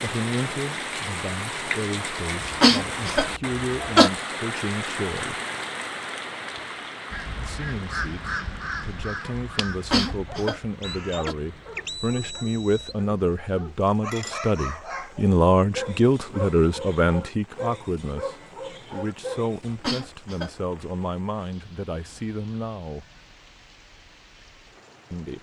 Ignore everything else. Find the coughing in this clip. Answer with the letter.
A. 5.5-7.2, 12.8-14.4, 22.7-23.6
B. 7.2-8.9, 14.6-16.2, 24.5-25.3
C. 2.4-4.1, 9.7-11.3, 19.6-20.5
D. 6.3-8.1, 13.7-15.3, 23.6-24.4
C.